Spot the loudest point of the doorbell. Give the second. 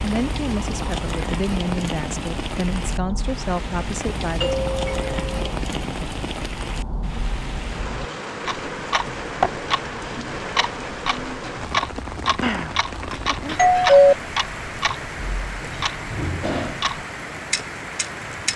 14 s.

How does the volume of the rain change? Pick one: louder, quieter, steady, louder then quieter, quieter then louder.
steady.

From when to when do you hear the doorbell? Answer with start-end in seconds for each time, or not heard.
4.4-5.2, 12.4-14.2.